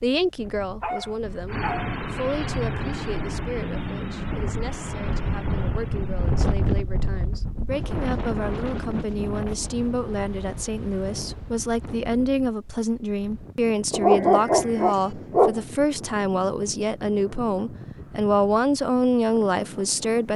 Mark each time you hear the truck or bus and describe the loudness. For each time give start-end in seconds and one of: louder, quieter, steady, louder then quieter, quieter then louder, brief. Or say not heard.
1.4-6.5 quieter.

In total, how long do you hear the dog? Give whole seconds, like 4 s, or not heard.
3 s.